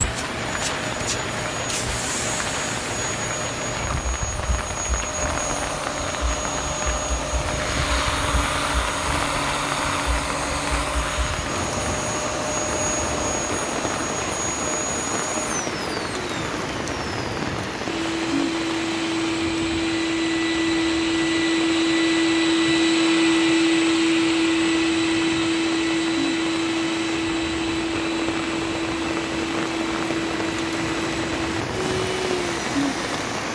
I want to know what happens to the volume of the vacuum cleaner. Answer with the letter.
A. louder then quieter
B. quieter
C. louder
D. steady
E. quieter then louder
A.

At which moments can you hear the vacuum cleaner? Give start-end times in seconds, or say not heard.
0.0-33.5.